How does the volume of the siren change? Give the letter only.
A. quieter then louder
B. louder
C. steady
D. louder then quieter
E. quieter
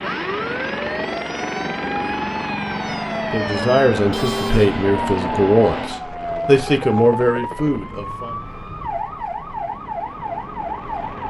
C.